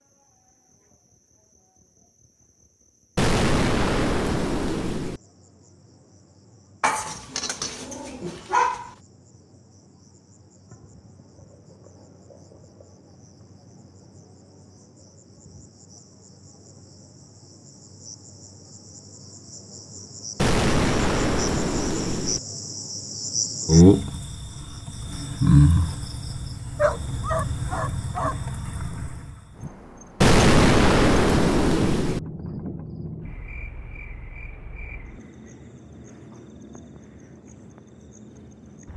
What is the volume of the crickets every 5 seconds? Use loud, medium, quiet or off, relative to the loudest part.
quiet, quiet, quiet, quiet, loud, loud, quiet, quiet.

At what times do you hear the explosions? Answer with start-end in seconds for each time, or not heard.
3.1-5.2, 20.4-22.4, 30.2-32.2.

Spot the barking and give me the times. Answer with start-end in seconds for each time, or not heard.
6.8-8.9, 26.8-28.4.